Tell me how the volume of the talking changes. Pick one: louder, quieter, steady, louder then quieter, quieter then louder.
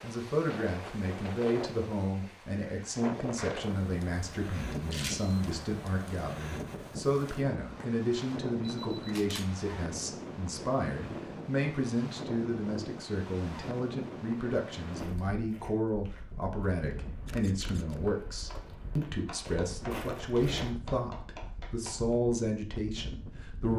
steady.